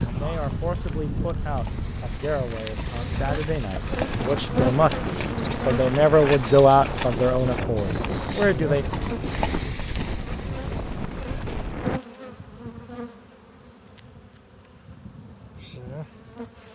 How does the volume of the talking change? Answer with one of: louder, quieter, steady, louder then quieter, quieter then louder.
louder then quieter.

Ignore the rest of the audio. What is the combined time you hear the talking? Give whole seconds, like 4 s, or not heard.
9 s.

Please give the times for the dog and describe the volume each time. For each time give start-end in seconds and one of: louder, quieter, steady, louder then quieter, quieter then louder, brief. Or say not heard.
not heard.